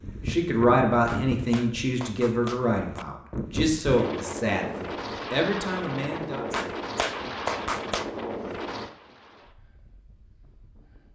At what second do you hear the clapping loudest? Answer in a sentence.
The loudest moment of the clapping is at 8 seconds.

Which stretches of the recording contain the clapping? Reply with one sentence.
The clapping can be heard from 1.1 to 3.0 s and from 6.5 to 8.1 s.